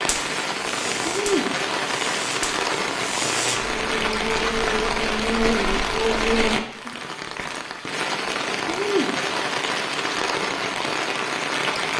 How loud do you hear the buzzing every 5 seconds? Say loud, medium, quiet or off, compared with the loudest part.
medium, loud, off.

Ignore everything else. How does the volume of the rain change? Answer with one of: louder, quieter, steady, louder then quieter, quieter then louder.
steady.